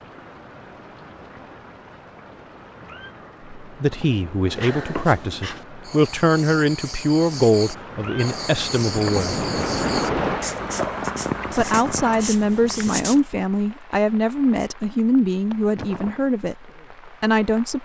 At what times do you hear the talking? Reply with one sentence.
You can hear the talking from 3.6 to 9.4 s, from 11.6 to 16.6 s and from 17.2 to 17.8 s.